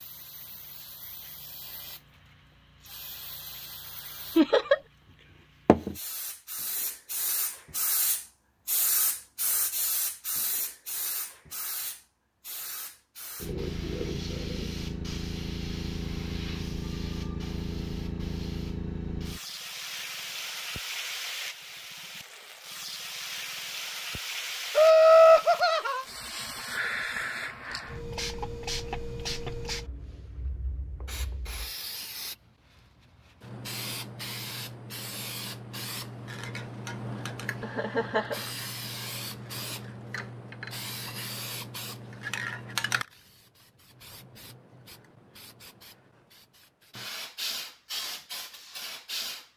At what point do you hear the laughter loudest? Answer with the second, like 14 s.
25 s.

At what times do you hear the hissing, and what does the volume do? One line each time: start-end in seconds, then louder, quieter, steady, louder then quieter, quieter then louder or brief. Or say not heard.
0.0-49.5 steady.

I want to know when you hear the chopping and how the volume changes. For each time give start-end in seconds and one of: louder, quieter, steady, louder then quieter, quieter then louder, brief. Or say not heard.
not heard.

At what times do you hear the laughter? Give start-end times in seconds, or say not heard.
4.3-4.8, 24.8-26.1, 37.6-38.5.